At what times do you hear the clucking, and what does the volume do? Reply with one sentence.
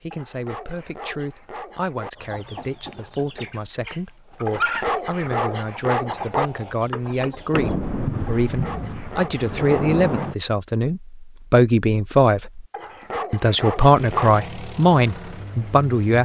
The clucking can be heard from 2.1 to 7.8 s, getting louder then quieter.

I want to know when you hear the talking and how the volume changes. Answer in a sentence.
You can hear the talking from 0.0 to 12.7 s, getting louder; and briefly from 13.3 to 16.2 s.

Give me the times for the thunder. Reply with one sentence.
The thunder can be heard from 7.5 to 10.3 s.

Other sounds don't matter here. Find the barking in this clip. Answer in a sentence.
You can hear the barking from 0.1 to 2.1 s, from 4.5 to 6.5 s, from 8.2 to 10.3 s and from 12.7 to 14.4 s.